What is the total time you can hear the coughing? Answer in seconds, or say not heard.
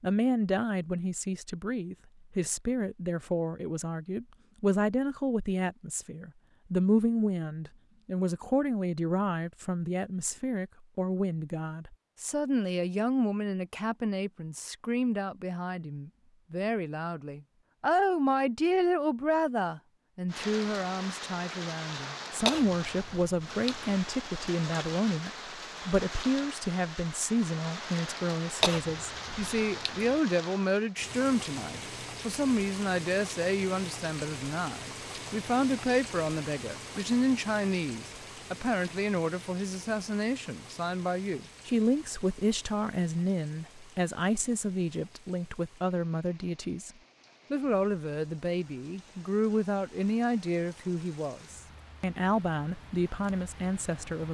3 s.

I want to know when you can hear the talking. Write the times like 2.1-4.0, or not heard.
0.0-46.9, 47.5-54.2.